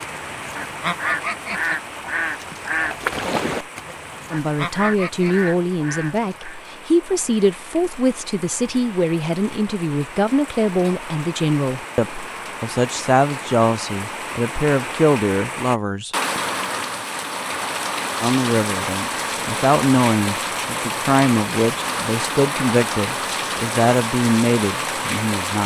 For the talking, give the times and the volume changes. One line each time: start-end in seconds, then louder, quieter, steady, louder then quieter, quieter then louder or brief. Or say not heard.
4.3-16.1 steady
18.2-25.6 steady.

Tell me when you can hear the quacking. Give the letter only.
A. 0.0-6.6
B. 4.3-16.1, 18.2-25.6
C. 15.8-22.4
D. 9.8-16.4
A.